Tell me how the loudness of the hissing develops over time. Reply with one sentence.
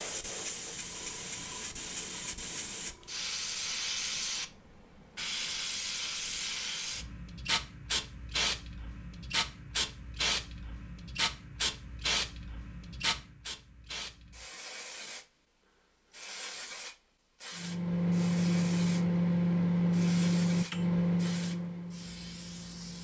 The loudness of the hissing goes down.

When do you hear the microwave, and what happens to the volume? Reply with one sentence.
You can hear the microwave from 17.6 to 22.9 s, getting quieter.